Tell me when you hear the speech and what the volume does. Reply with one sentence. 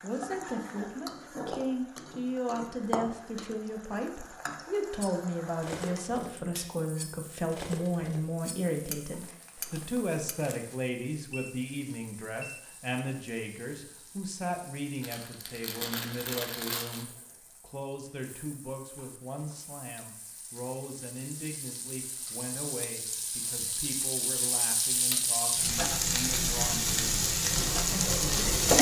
The speech can be heard from 0.0 to 28.6 s, getting quieter.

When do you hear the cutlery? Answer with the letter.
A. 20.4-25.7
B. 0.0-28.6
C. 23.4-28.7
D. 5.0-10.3
D.